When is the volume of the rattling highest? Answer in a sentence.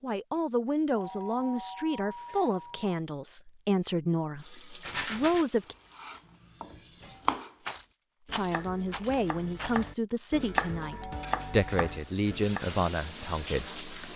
The volume of the rattling peaks at 5 seconds.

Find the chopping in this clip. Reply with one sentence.
The chopping can be heard from 6.0 to 12.7 s.